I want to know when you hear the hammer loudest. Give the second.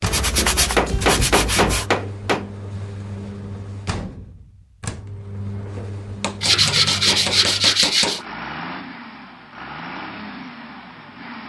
1 s.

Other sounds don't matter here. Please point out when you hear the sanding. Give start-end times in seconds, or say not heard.
0.1-1.9, 6.4-8.2.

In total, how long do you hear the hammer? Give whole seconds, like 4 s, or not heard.
4 s.